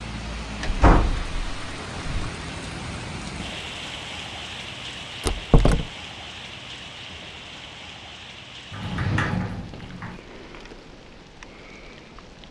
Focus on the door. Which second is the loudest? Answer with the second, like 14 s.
1 s.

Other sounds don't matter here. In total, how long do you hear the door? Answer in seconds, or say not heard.
4 s.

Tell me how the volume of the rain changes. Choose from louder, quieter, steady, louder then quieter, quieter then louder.
quieter.